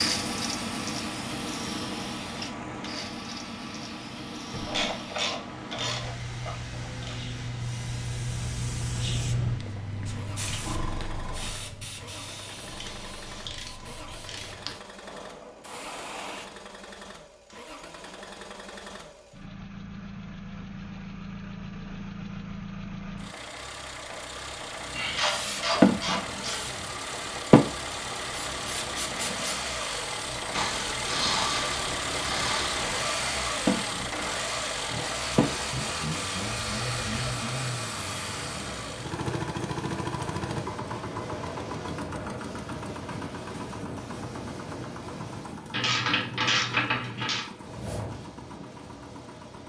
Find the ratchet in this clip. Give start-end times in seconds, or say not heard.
4.7-7.2, 12.8-14.6, 24.9-26.9, 30.5-32.9, 45.7-47.5.